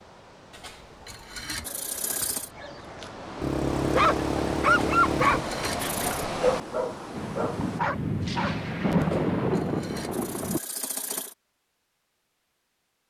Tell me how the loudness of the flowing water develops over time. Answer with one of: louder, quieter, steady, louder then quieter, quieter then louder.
louder.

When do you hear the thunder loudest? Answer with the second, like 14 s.
9 s.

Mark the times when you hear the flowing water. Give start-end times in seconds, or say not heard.
0.0-7.8.